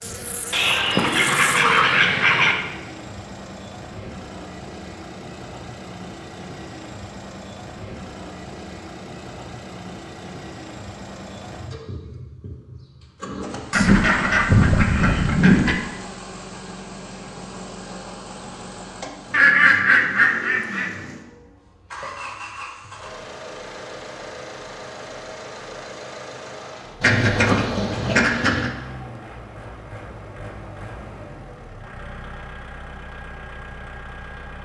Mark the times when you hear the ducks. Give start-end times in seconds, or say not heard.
0.5-2.5, 13.7-15.8, 19.3-20.9, 27.0-28.7.